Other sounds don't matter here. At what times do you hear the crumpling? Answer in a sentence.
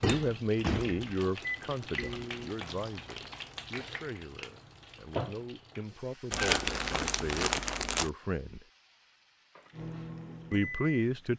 You can hear the crumpling from 1.0 to 3.4 s and from 6.3 to 8.1 s.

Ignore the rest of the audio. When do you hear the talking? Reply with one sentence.
The talking can be heard from 0.0 to 8.7 s and from 10.5 to 11.3 s.